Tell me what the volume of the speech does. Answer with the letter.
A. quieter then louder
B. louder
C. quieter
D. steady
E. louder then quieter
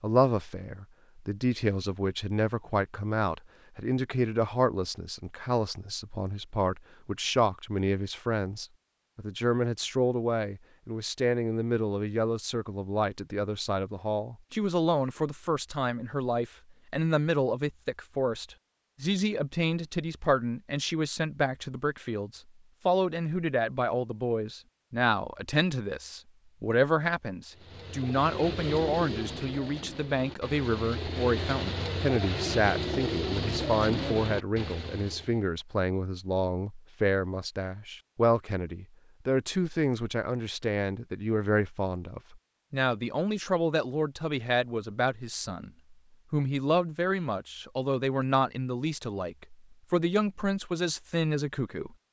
D.